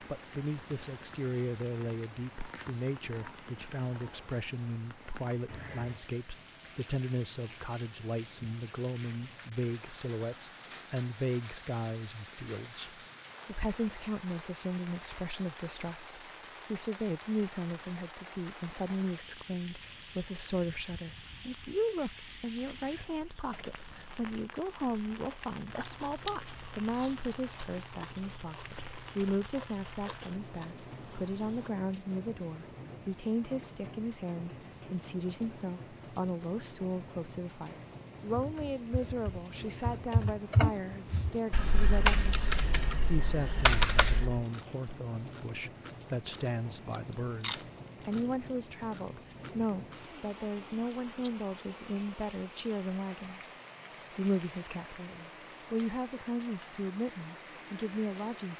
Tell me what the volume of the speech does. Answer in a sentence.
The loudness of the speech stays about the same.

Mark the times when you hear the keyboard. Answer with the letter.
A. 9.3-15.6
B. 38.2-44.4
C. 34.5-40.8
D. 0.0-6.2
B.